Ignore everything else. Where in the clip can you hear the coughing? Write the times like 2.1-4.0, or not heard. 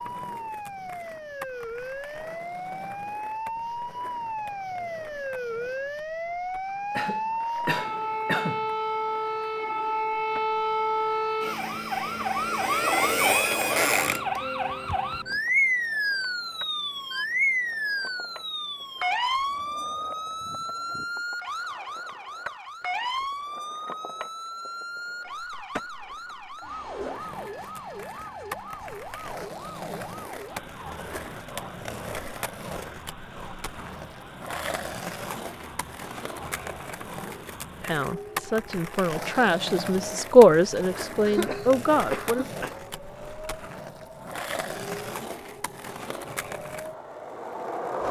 7.0-8.7, 41.2-42.8.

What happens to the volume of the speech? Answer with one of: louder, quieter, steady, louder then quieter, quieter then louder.
louder then quieter.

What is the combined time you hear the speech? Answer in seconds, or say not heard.
5 s.